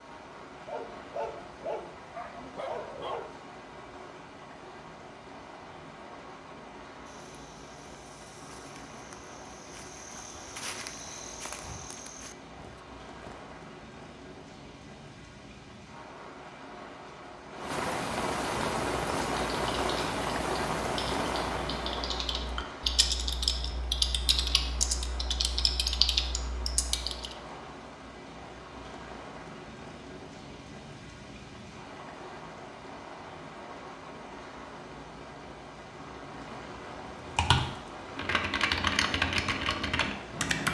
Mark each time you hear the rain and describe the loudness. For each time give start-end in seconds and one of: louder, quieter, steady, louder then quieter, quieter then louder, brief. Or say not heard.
0.0-40.7 louder then quieter.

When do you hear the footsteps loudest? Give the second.
11 s.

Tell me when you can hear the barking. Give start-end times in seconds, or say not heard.
0.7-3.3.